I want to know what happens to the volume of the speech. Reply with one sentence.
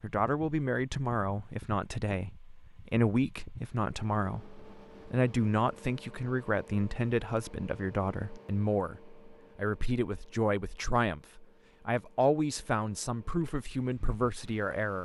The volume of the speech stays about the same.